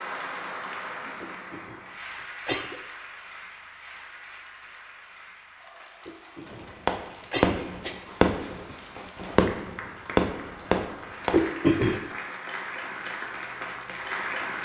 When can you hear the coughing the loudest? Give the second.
12 s.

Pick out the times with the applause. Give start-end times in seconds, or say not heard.
0.0-14.6.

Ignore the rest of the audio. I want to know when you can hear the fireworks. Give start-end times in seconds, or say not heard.
6.5-11.5.